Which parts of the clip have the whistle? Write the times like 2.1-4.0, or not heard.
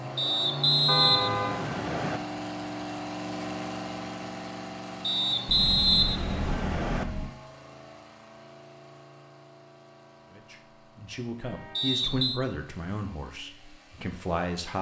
0.1-2.2, 5.0-7.0, 11.8-12.4.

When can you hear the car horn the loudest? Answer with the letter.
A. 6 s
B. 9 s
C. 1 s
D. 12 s
C.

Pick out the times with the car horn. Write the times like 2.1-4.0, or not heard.
0.8-1.6, 5.5-7.3, 11.4-12.1.